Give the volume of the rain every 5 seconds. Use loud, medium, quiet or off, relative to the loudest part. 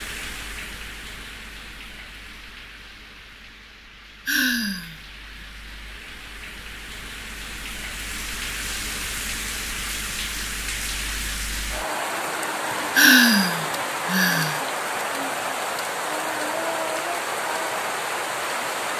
quiet, medium, loud, loud.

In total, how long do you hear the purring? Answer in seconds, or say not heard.
not heard.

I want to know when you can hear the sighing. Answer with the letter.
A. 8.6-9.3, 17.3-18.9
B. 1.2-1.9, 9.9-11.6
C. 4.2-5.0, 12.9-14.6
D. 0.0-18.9
C.